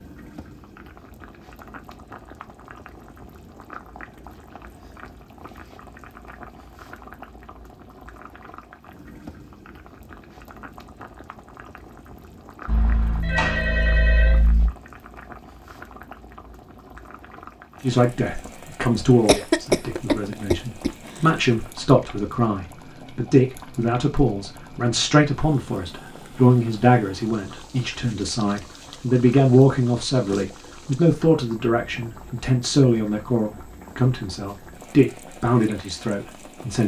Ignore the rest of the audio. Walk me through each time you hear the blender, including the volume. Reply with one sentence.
You can't hear the blender here.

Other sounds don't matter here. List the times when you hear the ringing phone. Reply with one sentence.
You can hear the ringing phone from 12.7 to 14.7 s.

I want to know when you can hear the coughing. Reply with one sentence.
You can hear the coughing from 19.2 to 21.2 s.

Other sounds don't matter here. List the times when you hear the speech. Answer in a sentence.
You can hear the speech from 17.8 to 36.8 s.